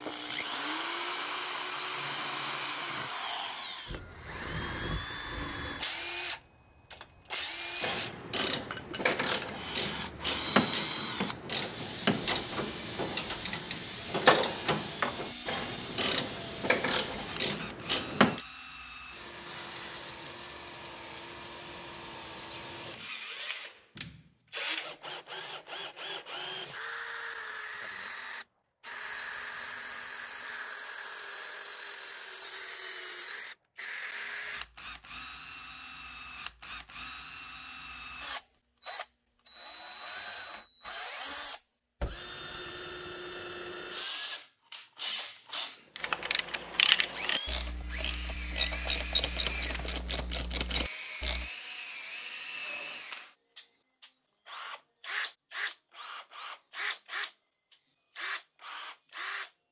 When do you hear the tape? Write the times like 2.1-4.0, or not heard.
not heard.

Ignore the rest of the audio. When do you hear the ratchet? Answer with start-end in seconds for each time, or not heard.
7.8-18.4, 46.0-51.5.